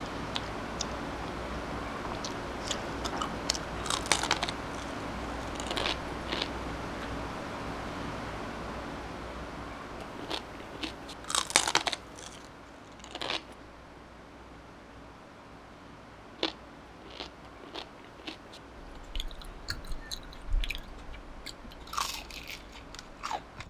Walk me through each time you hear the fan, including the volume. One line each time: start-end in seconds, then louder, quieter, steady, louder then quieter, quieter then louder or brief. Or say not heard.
0.0-23.6 quieter.